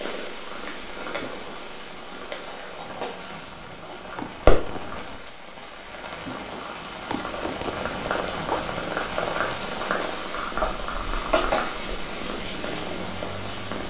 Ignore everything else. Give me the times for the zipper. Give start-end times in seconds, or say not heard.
4.2-5.3, 7.0-8.7.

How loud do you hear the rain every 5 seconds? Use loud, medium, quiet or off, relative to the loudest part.
medium, loud, medium.